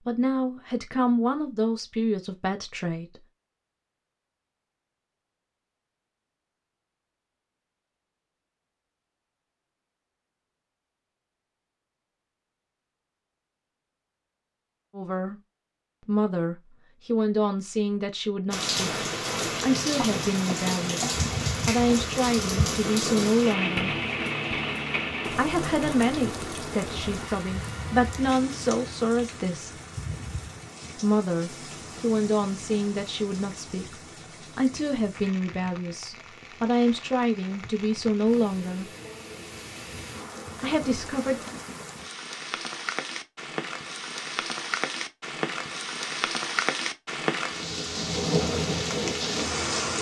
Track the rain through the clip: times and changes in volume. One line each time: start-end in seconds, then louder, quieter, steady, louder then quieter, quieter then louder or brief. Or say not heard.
18.5-49.9 quieter then louder.